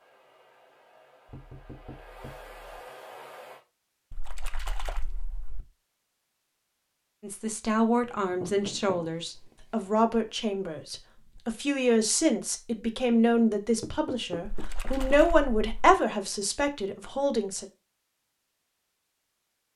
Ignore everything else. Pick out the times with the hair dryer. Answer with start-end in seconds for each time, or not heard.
0.0-3.6.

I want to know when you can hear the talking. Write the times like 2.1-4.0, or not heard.
7.2-17.6.